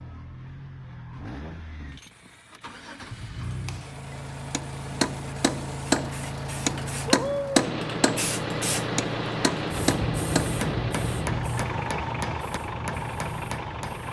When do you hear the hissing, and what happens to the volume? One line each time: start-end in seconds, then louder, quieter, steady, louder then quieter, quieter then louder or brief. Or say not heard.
1.9-14.0 louder.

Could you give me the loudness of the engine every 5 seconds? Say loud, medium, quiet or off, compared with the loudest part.
medium, loud, loud.